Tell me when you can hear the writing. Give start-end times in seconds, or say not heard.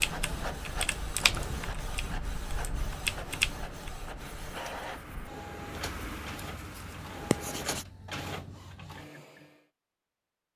4.2-7.8.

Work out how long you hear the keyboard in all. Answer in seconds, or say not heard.
4 s.